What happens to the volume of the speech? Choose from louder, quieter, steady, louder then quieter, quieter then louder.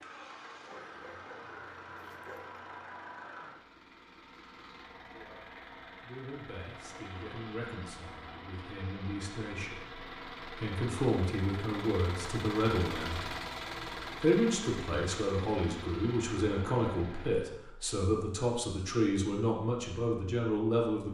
louder.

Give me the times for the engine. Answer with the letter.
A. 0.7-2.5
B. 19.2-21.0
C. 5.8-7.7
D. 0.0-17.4
D.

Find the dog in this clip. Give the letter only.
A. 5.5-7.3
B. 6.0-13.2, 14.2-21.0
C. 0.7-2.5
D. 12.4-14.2
C.